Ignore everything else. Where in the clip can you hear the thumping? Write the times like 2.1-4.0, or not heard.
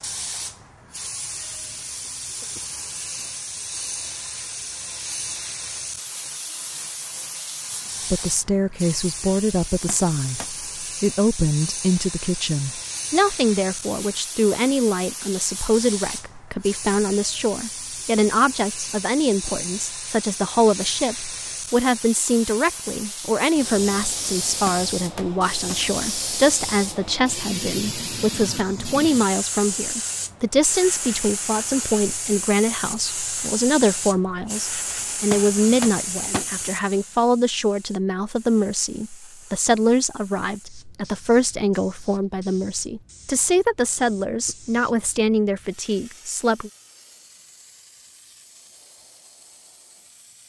9.8-10.5, 24.6-25.8, 35.3-36.5.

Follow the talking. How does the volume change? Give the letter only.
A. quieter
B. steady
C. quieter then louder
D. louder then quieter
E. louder
B.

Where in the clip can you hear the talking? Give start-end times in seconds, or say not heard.
8.1-46.7.